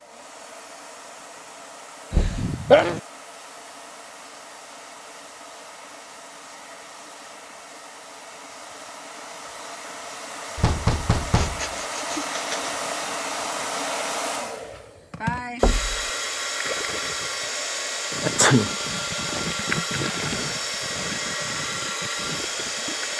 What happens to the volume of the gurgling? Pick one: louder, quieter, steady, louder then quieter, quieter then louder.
louder then quieter.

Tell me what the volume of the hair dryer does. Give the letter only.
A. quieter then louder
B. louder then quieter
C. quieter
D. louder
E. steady
D.